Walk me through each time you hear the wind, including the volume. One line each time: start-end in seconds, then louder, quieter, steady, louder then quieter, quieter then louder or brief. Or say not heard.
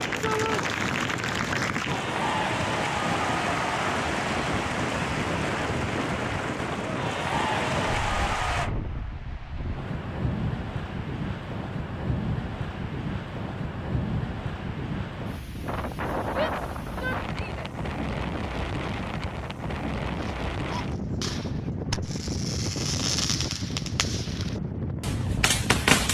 0.0-26.0 steady.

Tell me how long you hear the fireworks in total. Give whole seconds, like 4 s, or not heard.
6 s.